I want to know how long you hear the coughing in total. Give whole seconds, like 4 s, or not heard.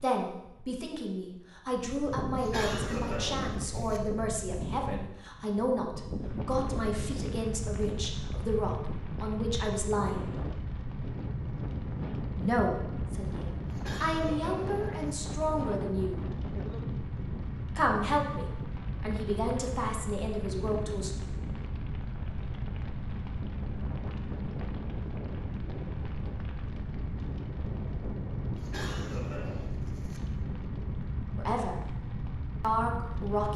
5 s.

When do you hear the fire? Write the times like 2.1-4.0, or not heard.
6.2-33.5.